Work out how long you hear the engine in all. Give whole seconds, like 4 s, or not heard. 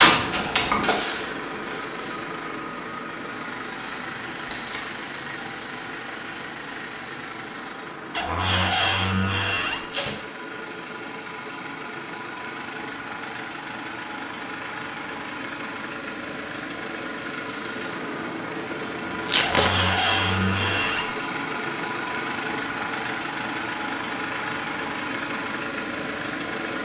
27 s.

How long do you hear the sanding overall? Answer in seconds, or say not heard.
2 s.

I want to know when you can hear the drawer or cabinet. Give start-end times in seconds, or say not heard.
8.2-9.8, 19.4-21.1.